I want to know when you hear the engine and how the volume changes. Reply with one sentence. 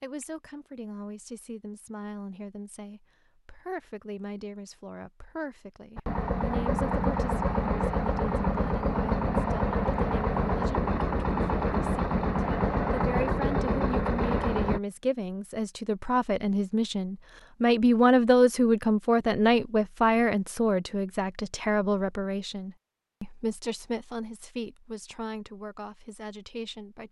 You can hear the engine from 6.0 to 14.8 s, at a steady volume.